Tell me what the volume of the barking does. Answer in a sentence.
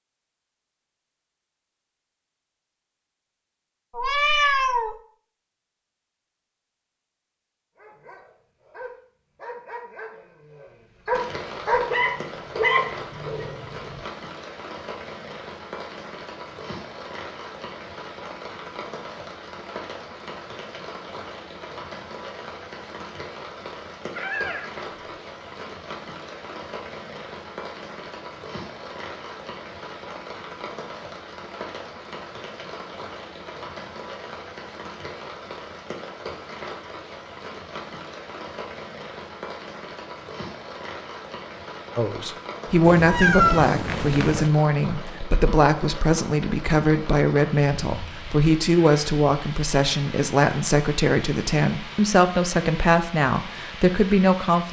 The loudness of the barking goes up.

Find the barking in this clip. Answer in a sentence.
You can hear the barking from 7.8 to 14.0 s.